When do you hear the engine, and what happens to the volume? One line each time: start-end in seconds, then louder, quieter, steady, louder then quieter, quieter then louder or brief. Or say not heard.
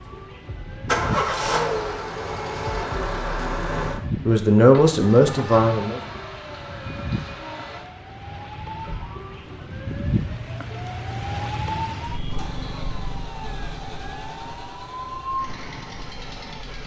0.0-16.8 quieter.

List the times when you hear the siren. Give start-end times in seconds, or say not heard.
0.0-16.8.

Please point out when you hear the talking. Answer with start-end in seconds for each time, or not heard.
3.5-6.0.